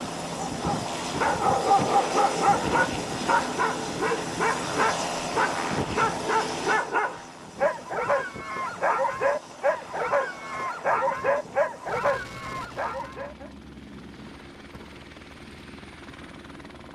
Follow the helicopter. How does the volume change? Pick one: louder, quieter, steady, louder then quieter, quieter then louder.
quieter.